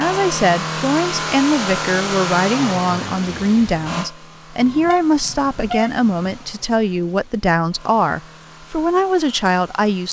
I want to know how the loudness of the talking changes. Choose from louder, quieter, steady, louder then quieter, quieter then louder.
steady.